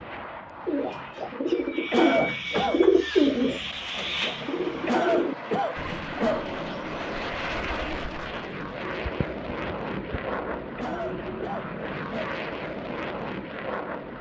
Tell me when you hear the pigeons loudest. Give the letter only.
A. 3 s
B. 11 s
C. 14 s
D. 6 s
A.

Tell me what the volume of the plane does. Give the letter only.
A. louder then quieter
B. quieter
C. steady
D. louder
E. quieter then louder
D.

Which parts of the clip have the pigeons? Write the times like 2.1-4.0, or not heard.
0.7-11.6.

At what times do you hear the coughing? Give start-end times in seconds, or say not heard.
1.9-2.9, 4.8-6.5, 10.8-12.3.